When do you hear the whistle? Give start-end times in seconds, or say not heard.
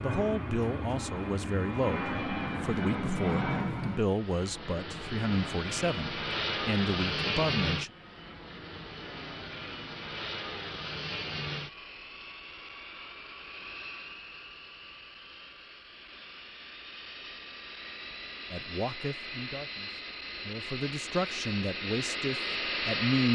not heard.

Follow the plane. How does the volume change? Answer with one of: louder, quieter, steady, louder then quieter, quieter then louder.
quieter then louder.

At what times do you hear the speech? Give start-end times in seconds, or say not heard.
0.0-7.9, 18.5-23.3.